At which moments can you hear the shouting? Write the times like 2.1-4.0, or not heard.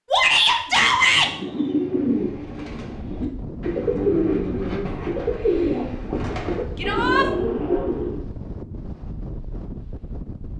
0.1-1.3, 6.8-7.2.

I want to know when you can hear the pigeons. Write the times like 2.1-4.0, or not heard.
0.7-8.2.